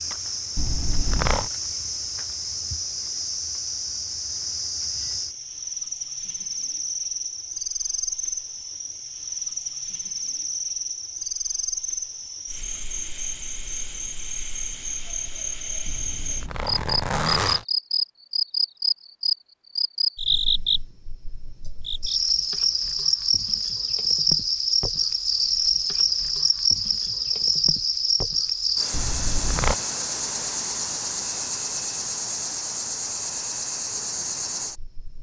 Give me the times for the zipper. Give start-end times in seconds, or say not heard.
0.6-1.5, 15.8-17.6, 28.9-29.8.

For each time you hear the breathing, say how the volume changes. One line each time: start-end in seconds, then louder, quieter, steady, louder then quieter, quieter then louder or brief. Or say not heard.
not heard.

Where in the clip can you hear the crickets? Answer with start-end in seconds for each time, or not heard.
0.0-35.1.